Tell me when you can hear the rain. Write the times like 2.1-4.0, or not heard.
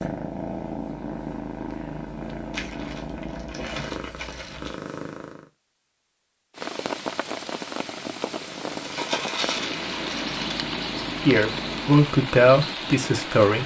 6.5-13.6.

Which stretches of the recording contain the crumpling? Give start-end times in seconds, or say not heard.
2.5-4.8, 8.8-10.6.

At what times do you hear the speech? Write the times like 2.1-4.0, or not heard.
11.2-13.6.